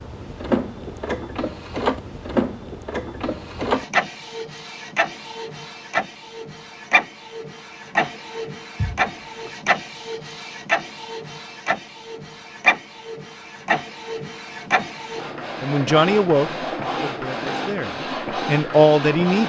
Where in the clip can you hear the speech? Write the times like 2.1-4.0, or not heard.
15.6-19.4.